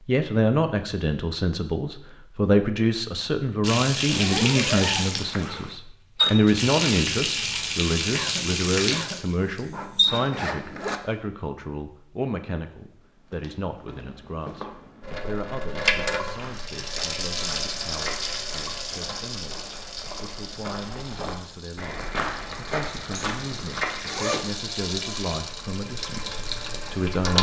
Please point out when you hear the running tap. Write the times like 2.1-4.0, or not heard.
3.6-10.2, 15.0-27.3.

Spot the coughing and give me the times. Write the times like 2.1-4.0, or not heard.
8.1-9.2.